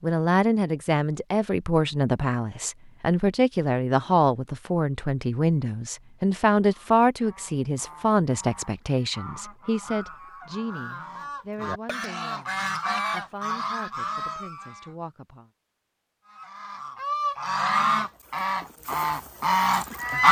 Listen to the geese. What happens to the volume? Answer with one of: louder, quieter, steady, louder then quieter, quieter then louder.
louder.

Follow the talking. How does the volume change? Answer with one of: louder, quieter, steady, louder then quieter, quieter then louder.
quieter.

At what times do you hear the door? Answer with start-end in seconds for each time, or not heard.
not heard.